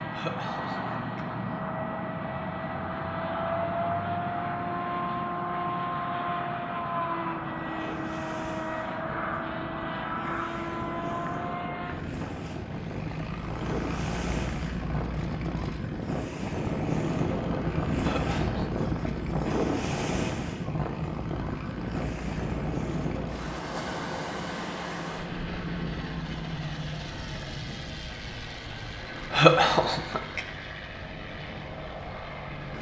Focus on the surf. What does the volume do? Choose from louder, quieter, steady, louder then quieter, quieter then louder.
louder then quieter.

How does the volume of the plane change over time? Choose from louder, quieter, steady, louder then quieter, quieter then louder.
quieter.